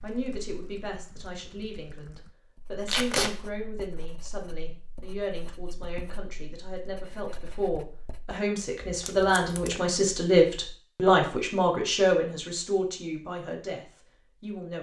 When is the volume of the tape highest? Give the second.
3 s.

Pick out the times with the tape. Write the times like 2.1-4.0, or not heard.
2.9-3.3, 8.8-9.8.